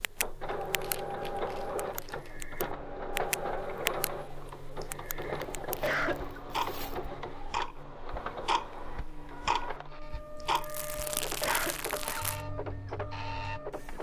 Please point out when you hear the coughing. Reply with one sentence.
You can hear the coughing from 2.0 to 2.5 s, from 4.8 to 6.3 s and from 10.4 to 12.3 s.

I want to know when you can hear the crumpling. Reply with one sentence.
You can hear the crumpling from 0.5 to 2.5 s, from 5.2 to 7.1 s and from 10.0 to 12.4 s.